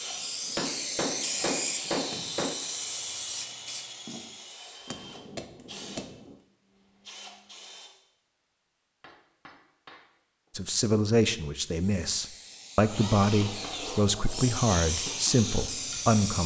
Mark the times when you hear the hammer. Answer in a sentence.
You can hear the hammer from 0.6 to 2.5 s, from 4.8 to 6.4 s, from 9.0 to 10.5 s and from 12.8 to 14.6 s.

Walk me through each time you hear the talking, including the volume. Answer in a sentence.
The talking can be heard from 10.6 to 16.4 s, at a steady volume.